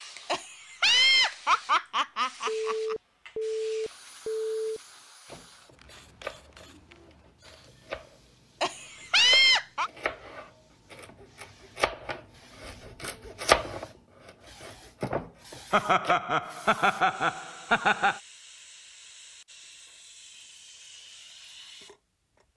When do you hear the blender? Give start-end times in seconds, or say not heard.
not heard.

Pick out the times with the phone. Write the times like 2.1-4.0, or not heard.
2.5-4.8.